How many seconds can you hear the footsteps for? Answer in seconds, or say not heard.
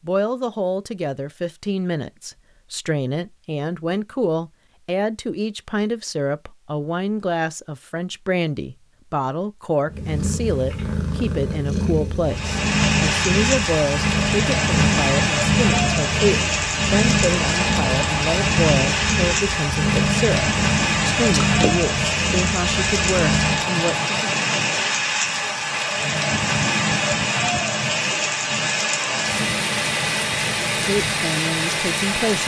not heard.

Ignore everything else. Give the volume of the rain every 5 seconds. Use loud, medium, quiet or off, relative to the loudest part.
off, off, loud, loud, loud, loud, loud.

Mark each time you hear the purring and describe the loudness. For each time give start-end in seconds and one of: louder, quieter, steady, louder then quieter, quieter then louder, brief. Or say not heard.
9.8-23.6 steady.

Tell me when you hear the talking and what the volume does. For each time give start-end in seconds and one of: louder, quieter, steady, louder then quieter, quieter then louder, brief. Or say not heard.
0.1-24.4 steady
30.8-32.4 brief.